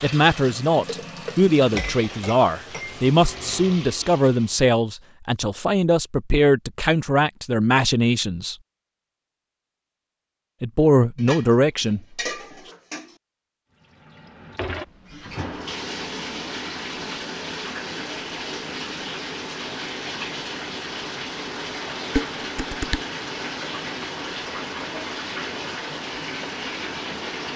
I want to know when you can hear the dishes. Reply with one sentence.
The dishes can be heard from 1.6 to 3.1 s, from 11.2 to 13.2 s and from 22.1 to 23.0 s.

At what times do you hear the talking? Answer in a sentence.
You can hear the talking from 0.0 to 8.6 s and from 10.6 to 12.0 s.